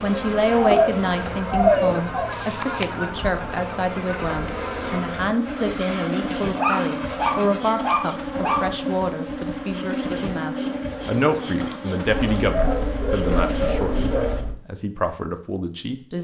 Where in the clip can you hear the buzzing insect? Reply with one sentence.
You can hear the buzzing insect from 0.0 to 14.4 s.